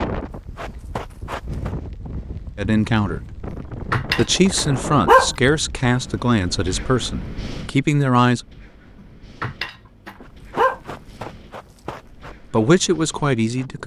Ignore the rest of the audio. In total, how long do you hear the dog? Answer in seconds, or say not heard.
3 s.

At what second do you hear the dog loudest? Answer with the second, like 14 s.
5 s.